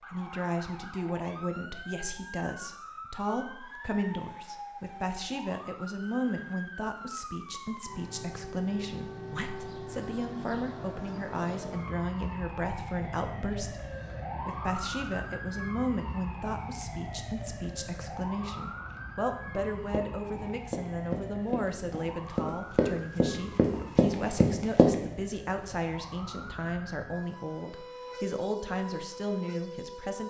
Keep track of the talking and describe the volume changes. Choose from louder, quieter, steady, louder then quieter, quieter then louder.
steady.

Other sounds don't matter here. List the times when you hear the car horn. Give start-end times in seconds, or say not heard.
not heard.